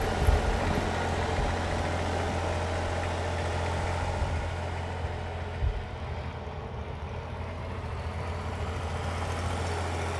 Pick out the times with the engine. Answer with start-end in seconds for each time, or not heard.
0.0-10.1.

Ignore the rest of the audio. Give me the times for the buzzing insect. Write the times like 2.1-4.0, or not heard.
0.0-10.1.